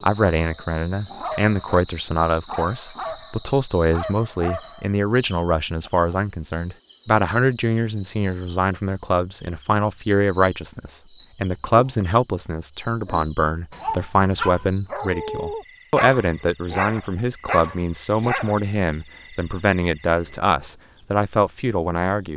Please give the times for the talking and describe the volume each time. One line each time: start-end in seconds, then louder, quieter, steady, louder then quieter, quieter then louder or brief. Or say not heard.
0.0-22.3 steady.